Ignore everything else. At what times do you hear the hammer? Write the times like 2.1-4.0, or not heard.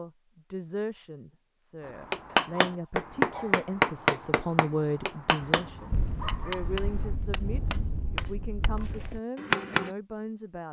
1.9-9.9.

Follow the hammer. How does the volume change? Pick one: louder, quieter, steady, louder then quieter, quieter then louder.
quieter.